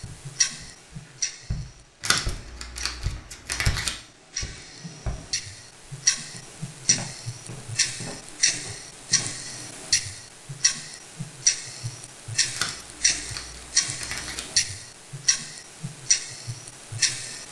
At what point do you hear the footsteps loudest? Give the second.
4 s.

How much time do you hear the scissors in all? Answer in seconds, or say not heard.
4 s.